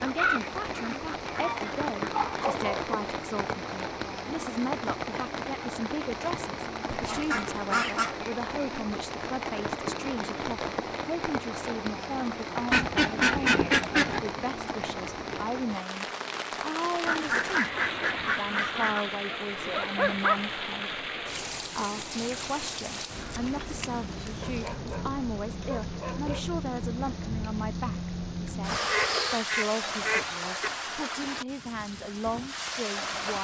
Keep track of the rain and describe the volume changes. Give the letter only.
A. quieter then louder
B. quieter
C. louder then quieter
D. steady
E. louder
D.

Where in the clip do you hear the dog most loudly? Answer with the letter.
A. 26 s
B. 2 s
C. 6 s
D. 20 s
D.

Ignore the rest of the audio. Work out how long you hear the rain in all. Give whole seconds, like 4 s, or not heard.
33 s.